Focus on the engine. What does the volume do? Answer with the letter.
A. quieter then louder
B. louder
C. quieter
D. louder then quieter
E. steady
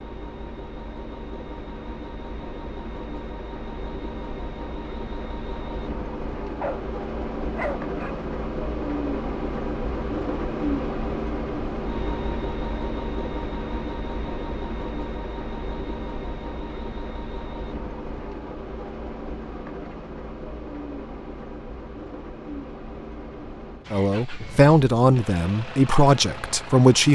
D.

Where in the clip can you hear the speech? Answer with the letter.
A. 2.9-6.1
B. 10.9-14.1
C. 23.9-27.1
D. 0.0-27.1
C.